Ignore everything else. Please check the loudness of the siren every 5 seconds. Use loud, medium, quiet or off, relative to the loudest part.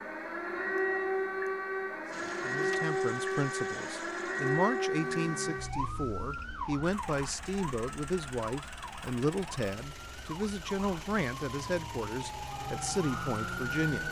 loud, medium, medium.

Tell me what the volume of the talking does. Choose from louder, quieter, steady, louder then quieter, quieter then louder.
steady.